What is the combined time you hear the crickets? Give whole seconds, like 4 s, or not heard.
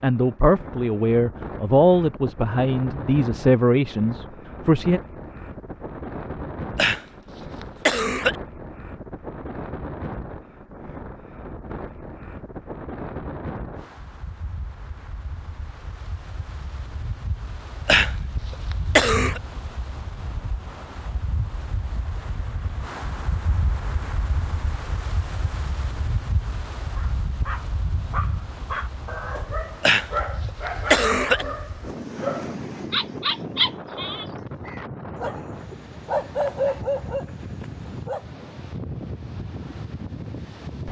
not heard.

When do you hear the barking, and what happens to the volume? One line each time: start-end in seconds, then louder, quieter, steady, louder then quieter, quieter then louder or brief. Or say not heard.
26.9-38.2 louder.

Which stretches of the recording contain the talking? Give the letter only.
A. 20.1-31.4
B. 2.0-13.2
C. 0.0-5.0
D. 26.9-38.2
C.